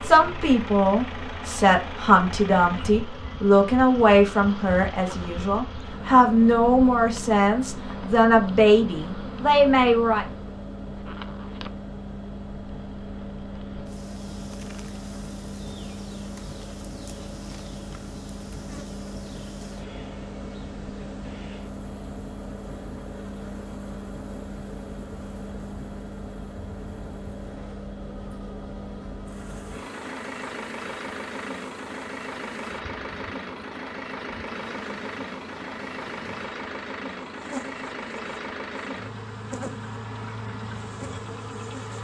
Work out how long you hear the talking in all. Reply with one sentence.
You can hear the talking for 10 seconds altogether.